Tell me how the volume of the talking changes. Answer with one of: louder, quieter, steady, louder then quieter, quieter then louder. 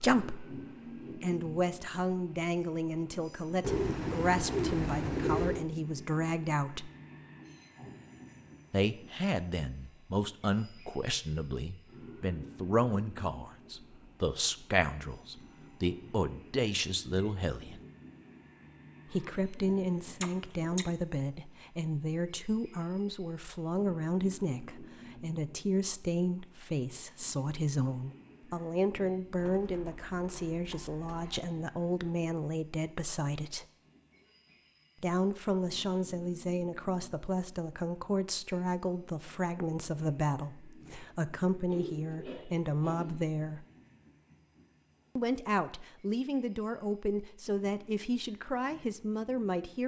steady.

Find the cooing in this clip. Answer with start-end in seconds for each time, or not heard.
3.6-5.7, 19.1-20.9, 29.4-31.4, 41.6-43.2.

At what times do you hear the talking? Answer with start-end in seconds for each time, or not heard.
0.0-6.9, 8.7-17.8, 19.1-33.6, 35.0-43.6, 45.1-49.8.